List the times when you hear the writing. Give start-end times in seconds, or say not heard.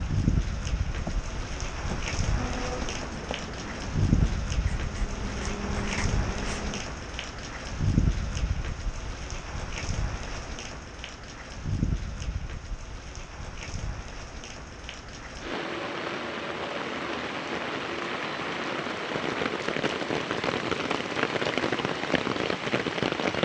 0.9-6.8.